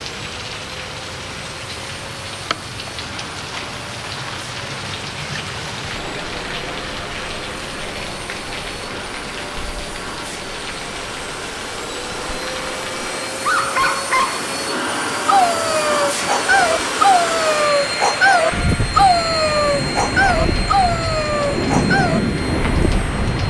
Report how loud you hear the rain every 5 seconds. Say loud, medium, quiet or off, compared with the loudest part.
medium, medium, medium, medium, loud.